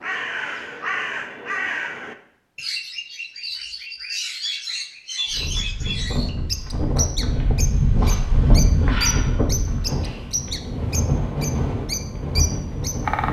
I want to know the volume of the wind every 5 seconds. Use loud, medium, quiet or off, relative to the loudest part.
off, loud, loud.